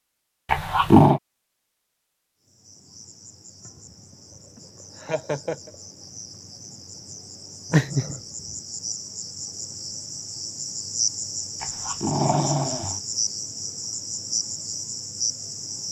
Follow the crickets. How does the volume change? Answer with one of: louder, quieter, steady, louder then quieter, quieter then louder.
louder.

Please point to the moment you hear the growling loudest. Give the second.
1 s.